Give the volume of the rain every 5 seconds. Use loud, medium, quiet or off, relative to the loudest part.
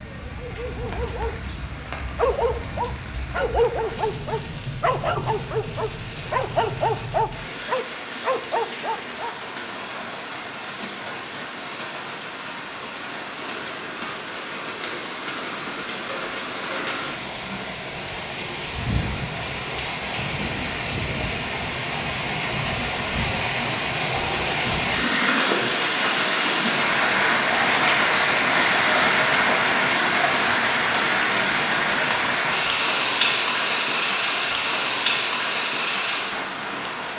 quiet, quiet, quiet, medium, medium, loud, loud, medium.